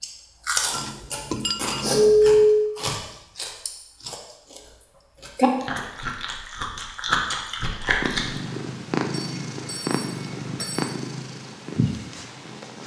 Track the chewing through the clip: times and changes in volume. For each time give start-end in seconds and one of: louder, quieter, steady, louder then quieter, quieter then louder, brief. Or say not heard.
0.0-8.4 quieter then louder.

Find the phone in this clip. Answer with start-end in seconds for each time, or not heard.
2.1-2.7, 9.1-10.9.